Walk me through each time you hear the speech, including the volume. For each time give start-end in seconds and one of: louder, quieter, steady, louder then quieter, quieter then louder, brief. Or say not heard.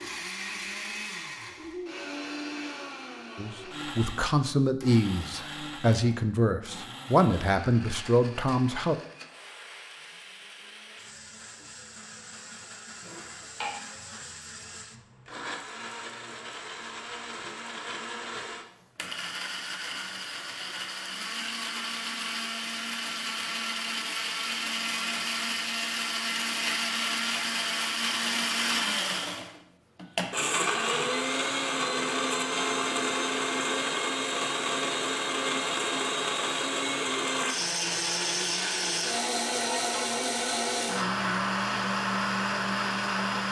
3.4-8.9 steady.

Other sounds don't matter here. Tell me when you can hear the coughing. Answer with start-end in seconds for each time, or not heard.
13.0-13.8.